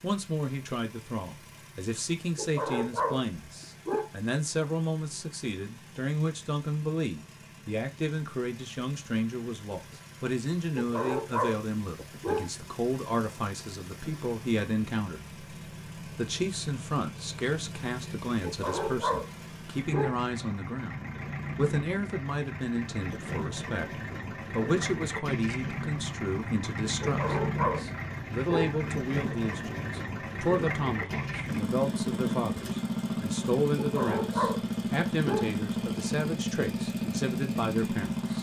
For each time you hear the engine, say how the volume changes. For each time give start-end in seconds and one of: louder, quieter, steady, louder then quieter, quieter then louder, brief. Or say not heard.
0.0-38.3 louder.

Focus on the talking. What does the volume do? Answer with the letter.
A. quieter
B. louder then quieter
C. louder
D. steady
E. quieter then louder
D.